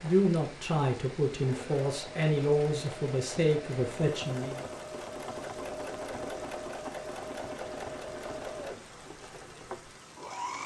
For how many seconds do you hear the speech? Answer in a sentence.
The speech can be heard for 5 seconds in total.